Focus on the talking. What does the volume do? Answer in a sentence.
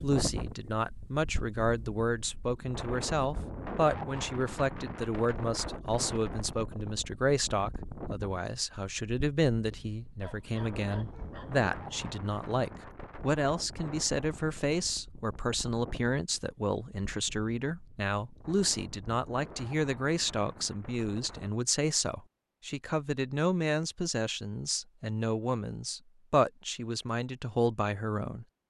The volume of the talking stays about the same.